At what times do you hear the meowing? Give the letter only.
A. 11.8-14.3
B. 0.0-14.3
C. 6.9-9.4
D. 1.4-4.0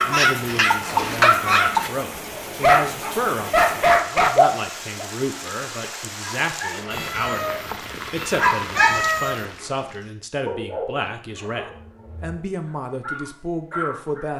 C.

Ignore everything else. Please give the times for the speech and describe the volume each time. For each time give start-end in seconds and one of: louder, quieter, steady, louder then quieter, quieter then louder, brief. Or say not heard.
0.0-14.3 steady.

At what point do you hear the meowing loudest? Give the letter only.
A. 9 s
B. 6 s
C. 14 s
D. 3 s
A.